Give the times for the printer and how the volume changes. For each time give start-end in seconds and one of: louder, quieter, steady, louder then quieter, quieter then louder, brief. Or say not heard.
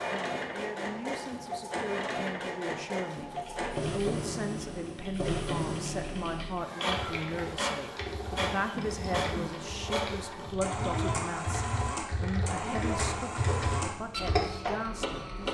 0.0-15.4 steady.